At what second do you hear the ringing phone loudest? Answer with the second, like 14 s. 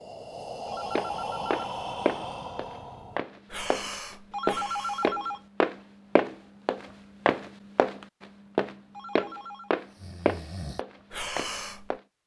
5 s.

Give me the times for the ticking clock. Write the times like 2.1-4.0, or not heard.
not heard.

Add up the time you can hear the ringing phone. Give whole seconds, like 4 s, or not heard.
3 s.